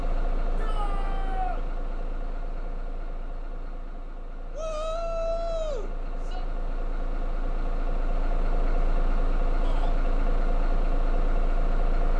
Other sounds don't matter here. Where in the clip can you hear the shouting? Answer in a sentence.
You can hear the shouting from 0.6 to 1.6 s, from 4.5 to 6.5 s and from 9.6 to 10.0 s.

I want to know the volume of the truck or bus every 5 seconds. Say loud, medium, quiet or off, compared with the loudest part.
medium, loud, loud.